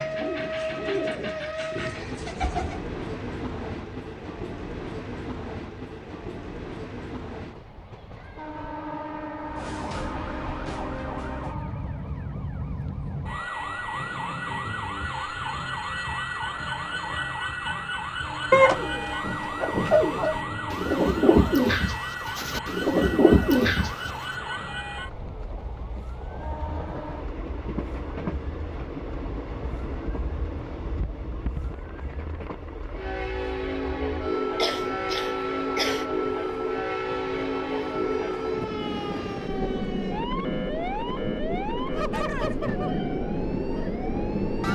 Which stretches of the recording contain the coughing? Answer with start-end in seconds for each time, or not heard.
34.5-36.1.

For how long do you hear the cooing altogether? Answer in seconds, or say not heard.
8 s.